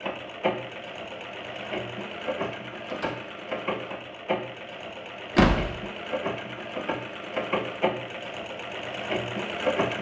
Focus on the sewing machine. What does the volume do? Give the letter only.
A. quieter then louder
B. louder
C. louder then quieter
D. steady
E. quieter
D.